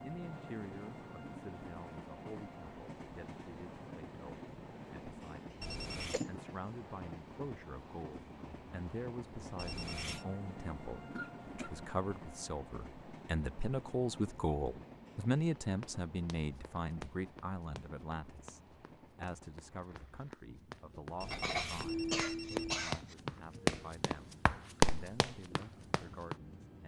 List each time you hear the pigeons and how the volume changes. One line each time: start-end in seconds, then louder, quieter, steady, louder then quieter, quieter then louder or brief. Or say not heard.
not heard.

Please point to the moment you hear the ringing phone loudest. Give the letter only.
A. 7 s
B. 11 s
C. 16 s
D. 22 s
D.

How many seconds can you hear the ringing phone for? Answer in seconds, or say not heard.
3 s.